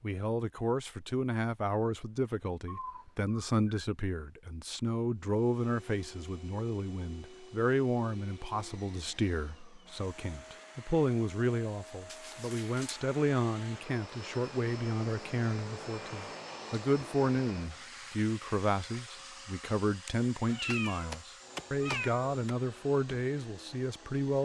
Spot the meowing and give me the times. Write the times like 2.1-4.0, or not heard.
2.6-3.9, 12.1-12.9, 20.1-22.6.